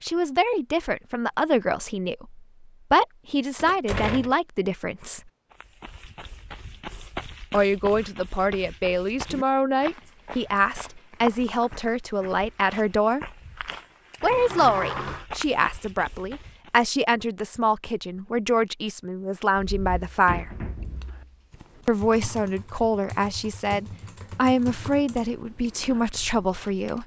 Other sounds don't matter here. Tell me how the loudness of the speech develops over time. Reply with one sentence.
The loudness of the speech stays about the same.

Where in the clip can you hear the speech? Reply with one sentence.
You can hear the speech from 0.0 to 5.2 s, from 7.5 to 13.2 s, from 14.2 to 20.4 s and from 21.9 to 27.0 s.